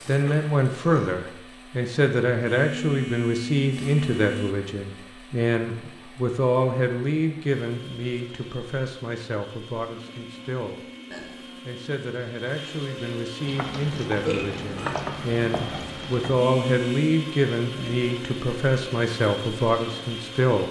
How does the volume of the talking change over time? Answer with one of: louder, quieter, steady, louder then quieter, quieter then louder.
quieter then louder.